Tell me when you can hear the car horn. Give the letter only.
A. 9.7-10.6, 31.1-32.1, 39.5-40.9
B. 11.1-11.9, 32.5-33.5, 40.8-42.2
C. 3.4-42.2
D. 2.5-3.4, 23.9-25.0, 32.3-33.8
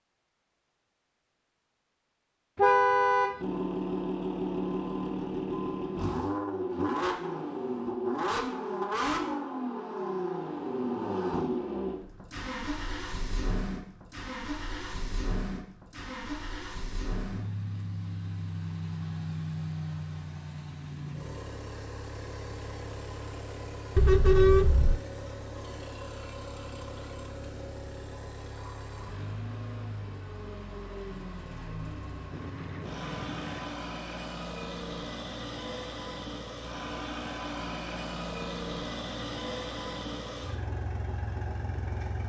D.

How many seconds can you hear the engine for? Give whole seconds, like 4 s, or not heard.
39 s.